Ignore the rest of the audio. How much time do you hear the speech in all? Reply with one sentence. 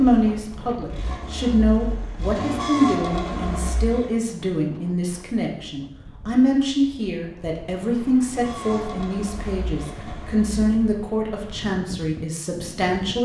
The speech can be heard for 13 seconds in total.